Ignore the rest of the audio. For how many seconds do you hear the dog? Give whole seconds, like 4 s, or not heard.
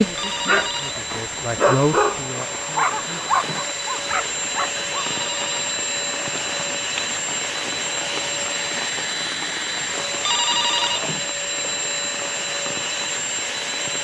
5 s.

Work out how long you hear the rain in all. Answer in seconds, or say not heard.
14 s.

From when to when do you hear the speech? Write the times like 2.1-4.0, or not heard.
0.0-3.4.